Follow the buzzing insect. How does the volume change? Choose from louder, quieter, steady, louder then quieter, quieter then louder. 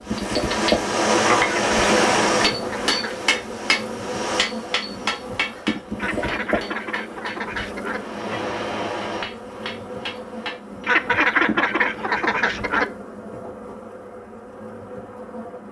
quieter.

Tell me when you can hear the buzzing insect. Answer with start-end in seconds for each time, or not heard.
0.0-15.6.